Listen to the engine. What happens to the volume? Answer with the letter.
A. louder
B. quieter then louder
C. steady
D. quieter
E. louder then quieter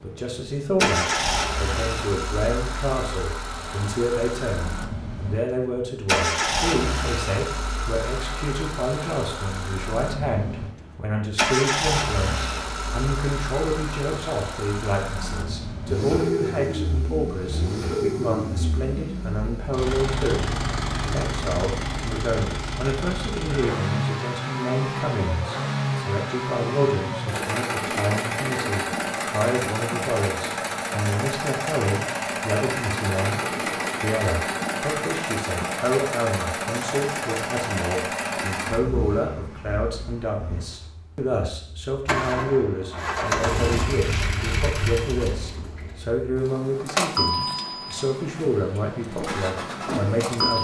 C.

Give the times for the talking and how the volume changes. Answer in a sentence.
You can hear the talking from 0.0 to 50.5 s, at a steady volume.